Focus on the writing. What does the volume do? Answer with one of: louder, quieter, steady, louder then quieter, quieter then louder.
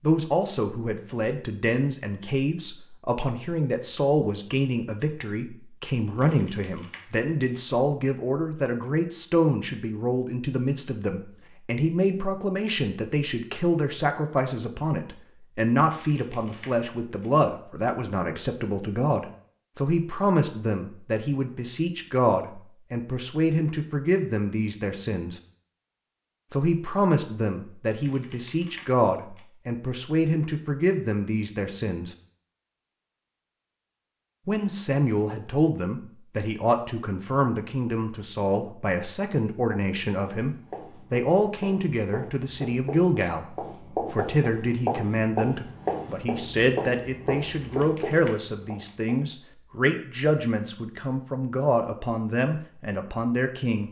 louder.